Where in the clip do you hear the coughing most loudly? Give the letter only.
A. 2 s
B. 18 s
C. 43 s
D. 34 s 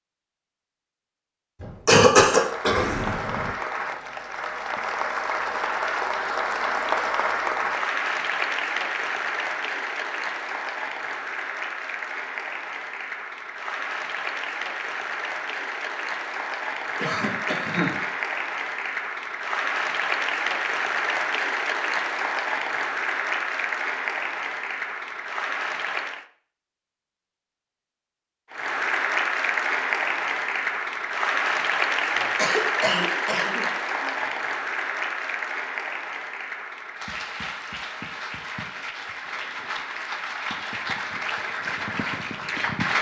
A.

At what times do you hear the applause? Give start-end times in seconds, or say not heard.
2.3-26.2, 28.5-42.9.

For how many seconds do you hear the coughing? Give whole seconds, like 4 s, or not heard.
5 s.